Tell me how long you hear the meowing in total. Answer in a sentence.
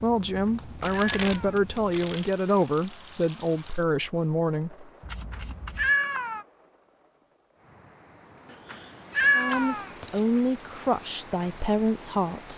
The meowing can be heard for 4 seconds in total.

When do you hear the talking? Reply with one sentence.
You can hear the talking from 0.0 to 4.9 s and from 9.3 to 12.5 s.